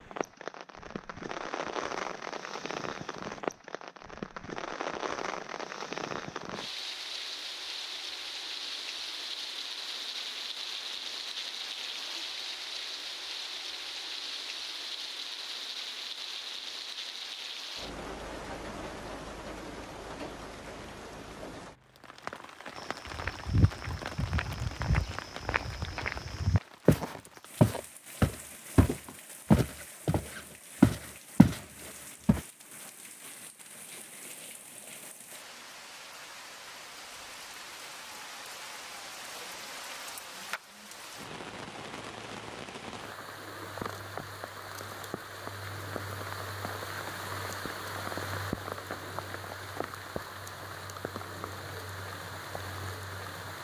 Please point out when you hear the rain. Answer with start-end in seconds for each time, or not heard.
0.0-53.5.